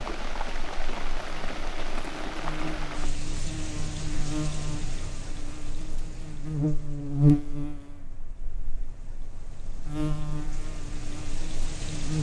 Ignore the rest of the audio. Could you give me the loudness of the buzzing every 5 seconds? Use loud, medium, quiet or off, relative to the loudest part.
medium, loud, medium.